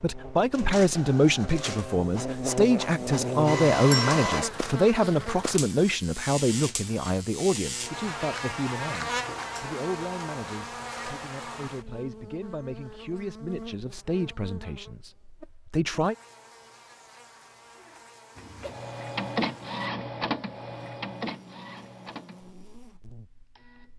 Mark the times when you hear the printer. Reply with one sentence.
You can hear the printer from 0.0 to 4.5 s and from 18.4 to 23.9 s.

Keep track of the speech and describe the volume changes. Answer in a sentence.
The volume of the speech goes down.